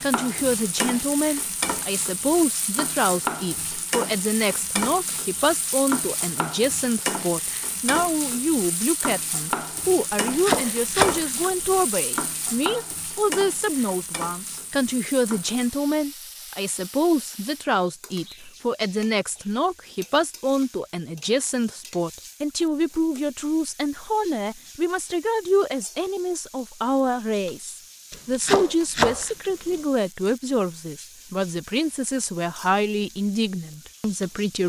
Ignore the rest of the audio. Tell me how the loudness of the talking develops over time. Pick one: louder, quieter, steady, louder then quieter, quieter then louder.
steady.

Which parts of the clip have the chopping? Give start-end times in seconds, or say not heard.
10.1-11.8, 28.1-29.8.